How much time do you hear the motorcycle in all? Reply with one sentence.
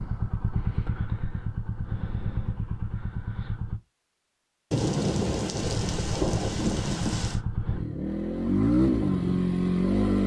You can hear the motorcycle for 8 seconds altogether.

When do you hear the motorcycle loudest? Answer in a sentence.
The volume of the motorcycle peaks at 9 seconds.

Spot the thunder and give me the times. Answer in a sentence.
You can hear the thunder from 4.7 to 7.4 s.